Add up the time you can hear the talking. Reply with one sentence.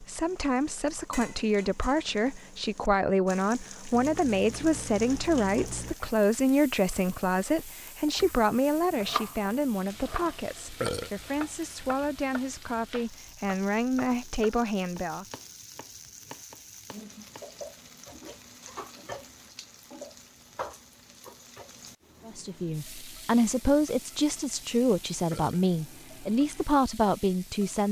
You can hear the talking for 21 seconds altogether.